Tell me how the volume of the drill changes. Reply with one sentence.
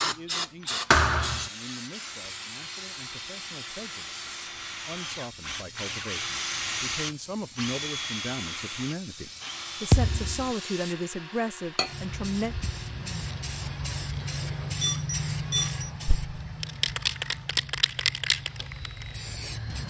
The volume of the drill goes up, then down.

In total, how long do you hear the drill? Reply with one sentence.
You can hear the drill for 20 seconds altogether.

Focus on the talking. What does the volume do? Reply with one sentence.
The volume of the talking goes up.